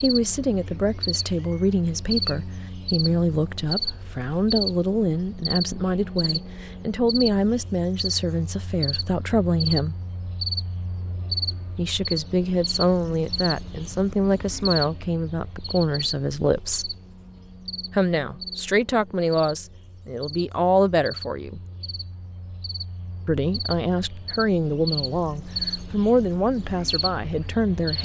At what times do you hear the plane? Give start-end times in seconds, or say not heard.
not heard.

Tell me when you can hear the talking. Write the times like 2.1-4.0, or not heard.
0.0-9.9, 11.8-16.9, 17.9-21.6, 23.2-27.9.